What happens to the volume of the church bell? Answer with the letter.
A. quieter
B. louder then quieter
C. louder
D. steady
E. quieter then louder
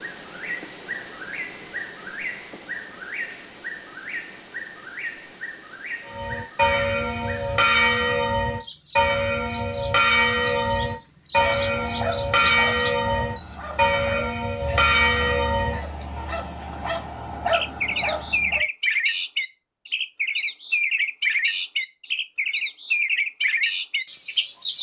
D.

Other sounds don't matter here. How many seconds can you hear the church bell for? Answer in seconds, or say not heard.
10 s.